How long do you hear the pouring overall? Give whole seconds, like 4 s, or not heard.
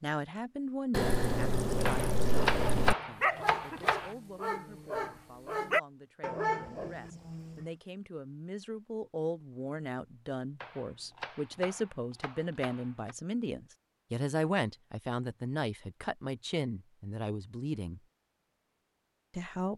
2 s.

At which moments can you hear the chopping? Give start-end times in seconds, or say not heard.
1.9-4.2, 10.6-13.2.